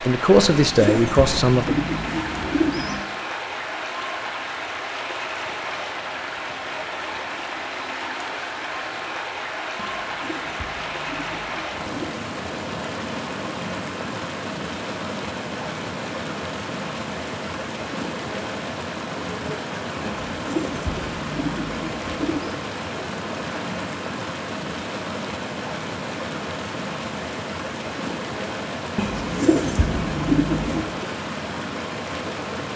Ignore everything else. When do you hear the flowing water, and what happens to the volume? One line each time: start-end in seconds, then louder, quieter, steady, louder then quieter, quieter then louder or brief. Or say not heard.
0.0-32.7 steady.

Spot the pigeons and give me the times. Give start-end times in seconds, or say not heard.
0.5-3.0, 9.8-12.2, 20.1-22.6, 28.9-30.9.